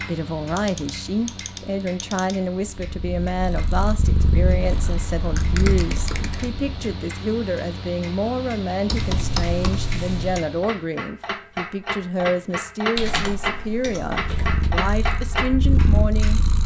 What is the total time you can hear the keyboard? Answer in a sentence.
The keyboard can be heard for 7 seconds in total.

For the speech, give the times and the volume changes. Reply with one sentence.
The speech can be heard from 0.1 to 16.4 s, at a steady volume.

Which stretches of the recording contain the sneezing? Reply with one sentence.
You can't hear the sneezing here.